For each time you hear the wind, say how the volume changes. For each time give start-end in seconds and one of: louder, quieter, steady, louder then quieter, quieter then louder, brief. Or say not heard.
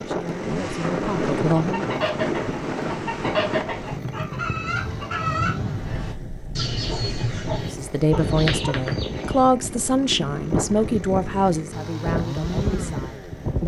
0.0-13.6 quieter then louder.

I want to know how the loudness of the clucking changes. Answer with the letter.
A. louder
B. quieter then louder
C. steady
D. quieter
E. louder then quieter
C.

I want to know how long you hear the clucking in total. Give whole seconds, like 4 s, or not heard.
8 s.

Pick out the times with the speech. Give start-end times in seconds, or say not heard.
0.1-1.9, 7.7-13.6.